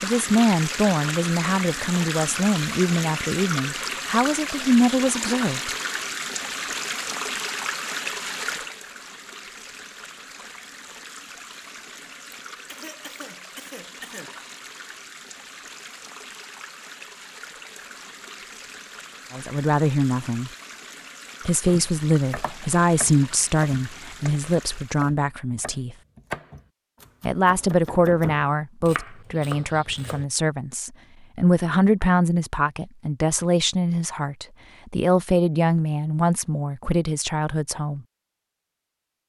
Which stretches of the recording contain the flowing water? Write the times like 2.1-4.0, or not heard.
0.0-25.1.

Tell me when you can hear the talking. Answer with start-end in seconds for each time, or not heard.
0.0-5.8, 19.3-20.5, 21.4-25.9, 27.2-38.0.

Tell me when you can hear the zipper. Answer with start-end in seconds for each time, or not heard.
not heard.